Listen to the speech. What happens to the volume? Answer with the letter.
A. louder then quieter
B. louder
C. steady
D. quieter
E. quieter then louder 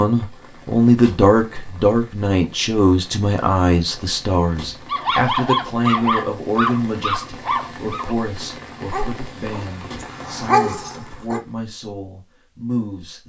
D.